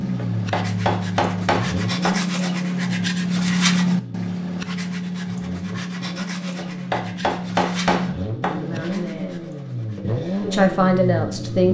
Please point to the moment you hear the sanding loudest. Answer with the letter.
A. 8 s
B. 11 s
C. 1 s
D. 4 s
D.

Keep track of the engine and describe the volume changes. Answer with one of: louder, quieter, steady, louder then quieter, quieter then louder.
quieter then louder.